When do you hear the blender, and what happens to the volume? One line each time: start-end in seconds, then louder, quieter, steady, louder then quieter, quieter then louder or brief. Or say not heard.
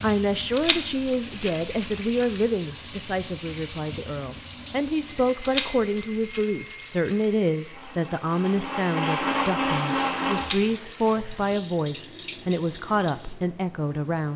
5.0-10.6 louder.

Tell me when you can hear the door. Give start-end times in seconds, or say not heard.
not heard.